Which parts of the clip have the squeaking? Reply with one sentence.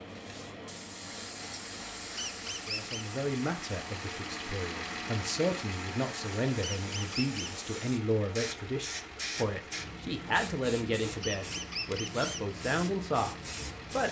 The squeaking can be heard from 2.1 to 3.0 s, from 6.6 to 7.6 s and from 11.2 to 12.4 s.